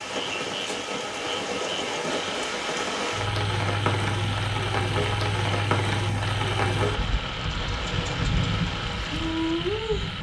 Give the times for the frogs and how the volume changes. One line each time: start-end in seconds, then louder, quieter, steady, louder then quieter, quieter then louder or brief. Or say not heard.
0.0-10.1 steady.